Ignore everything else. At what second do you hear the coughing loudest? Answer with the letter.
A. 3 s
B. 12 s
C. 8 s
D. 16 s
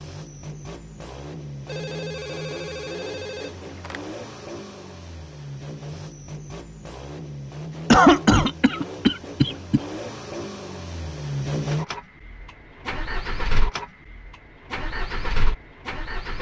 C.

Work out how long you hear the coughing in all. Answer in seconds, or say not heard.
2 s.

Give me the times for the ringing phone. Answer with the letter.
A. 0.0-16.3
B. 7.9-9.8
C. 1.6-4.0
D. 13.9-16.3
C.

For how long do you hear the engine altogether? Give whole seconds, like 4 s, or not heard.
16 s.